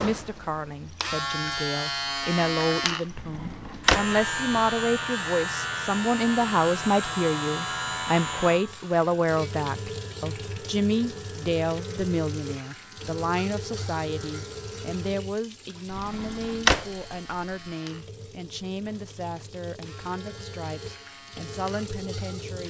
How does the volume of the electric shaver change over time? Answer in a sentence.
The volume of the electric shaver goes down.